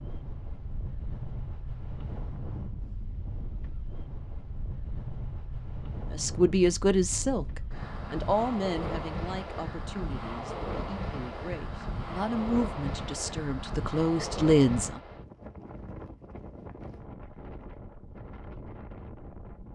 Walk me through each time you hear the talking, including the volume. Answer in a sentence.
You can hear the talking from 6.1 to 15.0 s, getting quieter then louder.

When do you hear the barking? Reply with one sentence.
The barking can't be heard in this clip.